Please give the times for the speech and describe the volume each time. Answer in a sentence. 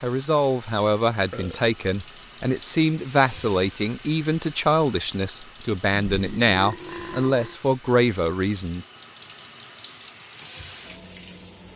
The speech can be heard from 0.0 to 8.8 s, at a steady volume.